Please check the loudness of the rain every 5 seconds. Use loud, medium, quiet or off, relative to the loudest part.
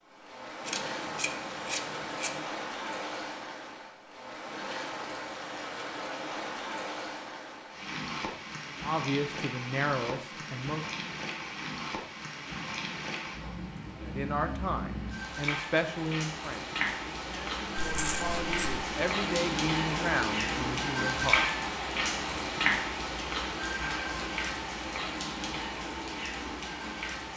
medium, medium, medium, loud, loud, medium.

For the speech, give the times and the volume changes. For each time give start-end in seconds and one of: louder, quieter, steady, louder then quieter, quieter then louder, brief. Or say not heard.
8.8-10.8 brief
14.0-21.4 quieter then louder.